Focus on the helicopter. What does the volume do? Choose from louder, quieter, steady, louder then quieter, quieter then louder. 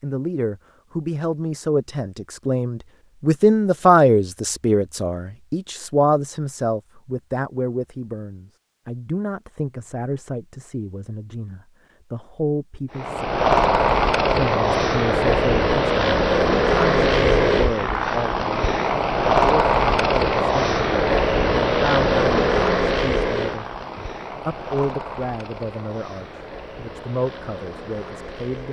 quieter.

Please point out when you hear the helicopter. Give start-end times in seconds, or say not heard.
12.9-28.6.